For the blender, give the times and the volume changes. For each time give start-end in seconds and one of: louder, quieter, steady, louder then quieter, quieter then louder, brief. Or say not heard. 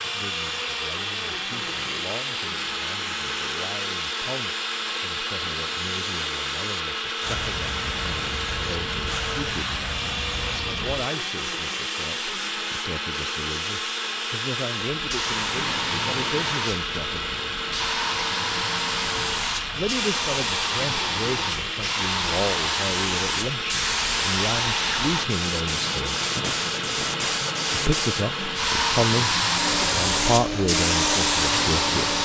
0.0-32.2 steady.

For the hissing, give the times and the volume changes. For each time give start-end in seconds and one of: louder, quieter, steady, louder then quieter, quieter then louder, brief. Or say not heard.
0.0-32.2 louder.